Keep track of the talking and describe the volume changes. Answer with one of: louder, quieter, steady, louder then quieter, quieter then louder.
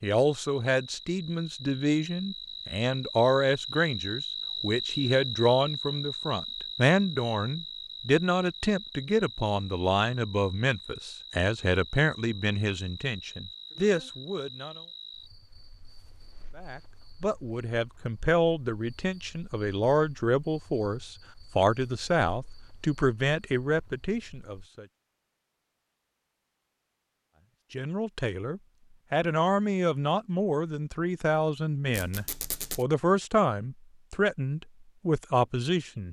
steady.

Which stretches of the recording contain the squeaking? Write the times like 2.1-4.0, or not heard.
31.9-32.9.